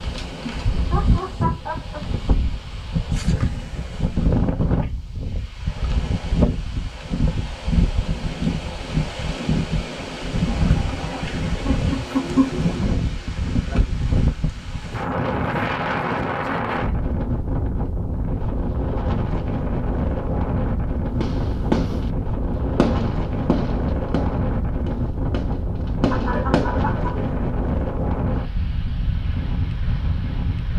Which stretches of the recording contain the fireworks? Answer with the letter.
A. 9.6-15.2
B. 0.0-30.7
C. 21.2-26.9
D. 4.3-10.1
C.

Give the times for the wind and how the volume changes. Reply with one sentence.
The wind can be heard from 0.0 to 30.7 s, at a steady volume.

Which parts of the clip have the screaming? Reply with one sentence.
You can't hear the screaming here.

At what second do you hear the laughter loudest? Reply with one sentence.
The loudest moment of the laughter is at 12 seconds.